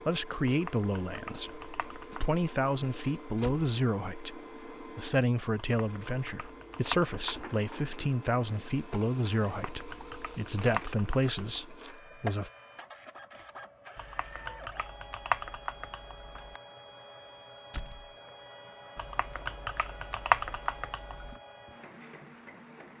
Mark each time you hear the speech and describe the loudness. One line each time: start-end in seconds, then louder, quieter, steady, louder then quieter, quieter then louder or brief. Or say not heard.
0.1-12.5 steady.